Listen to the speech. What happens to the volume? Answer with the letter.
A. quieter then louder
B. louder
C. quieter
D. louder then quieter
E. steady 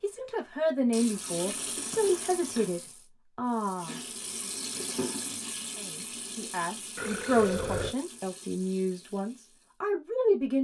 A.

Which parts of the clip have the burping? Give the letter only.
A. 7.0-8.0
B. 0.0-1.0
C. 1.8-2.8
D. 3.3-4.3
A.